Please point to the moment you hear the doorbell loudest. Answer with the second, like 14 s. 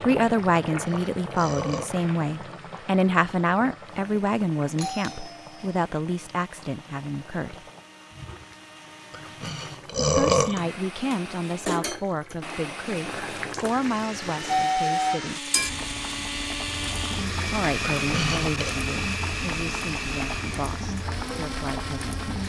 15 s.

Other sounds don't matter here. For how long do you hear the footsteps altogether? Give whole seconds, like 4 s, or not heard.
not heard.